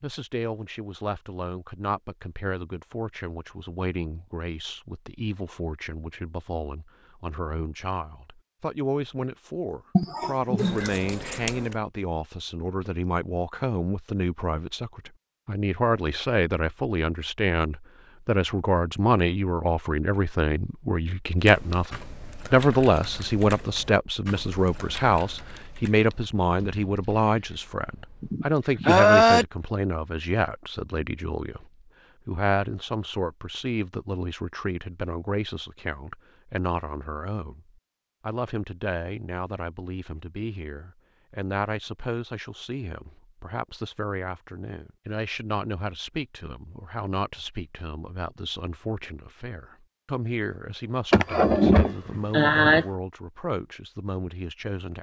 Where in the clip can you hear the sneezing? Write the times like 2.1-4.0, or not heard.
9.9-10.9, 28.2-29.4, 51.1-52.9.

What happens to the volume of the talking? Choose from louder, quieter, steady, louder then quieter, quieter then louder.
louder then quieter.